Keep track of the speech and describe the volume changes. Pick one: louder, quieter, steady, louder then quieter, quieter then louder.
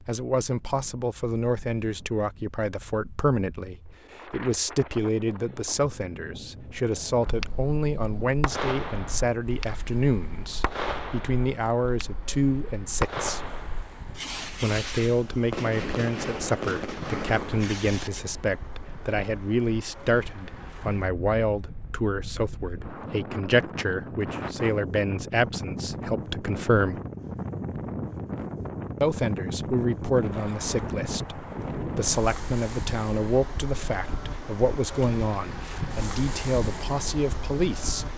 steady.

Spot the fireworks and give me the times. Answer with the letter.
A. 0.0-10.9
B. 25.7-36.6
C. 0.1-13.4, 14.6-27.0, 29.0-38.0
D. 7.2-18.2
D.